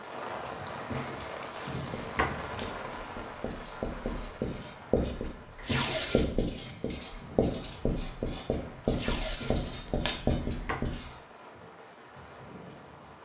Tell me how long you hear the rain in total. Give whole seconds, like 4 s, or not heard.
13 s.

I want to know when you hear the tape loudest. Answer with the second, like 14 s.
6 s.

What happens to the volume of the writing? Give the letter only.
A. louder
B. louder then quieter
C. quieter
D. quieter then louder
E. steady
A.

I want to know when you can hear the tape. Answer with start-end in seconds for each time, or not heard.
1.4-2.7, 5.6-6.6, 8.9-10.2.